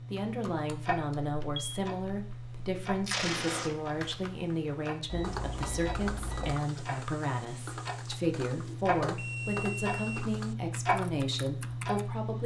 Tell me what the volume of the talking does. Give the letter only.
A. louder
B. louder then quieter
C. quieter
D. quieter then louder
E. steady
E.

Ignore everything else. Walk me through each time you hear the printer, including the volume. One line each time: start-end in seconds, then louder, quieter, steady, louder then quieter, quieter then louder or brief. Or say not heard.
not heard.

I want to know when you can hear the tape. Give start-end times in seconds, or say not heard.
3.0-3.7.